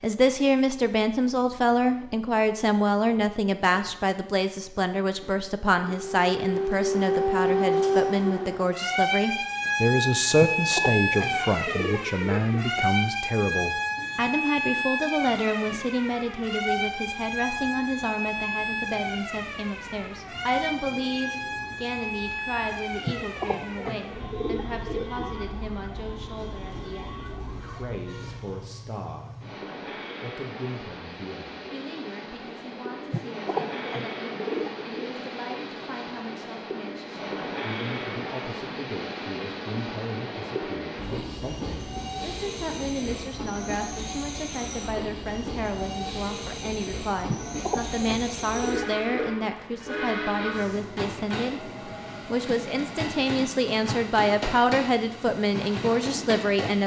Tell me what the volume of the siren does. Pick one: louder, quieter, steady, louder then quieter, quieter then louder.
quieter.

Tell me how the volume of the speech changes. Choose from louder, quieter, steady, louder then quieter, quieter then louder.
quieter then louder.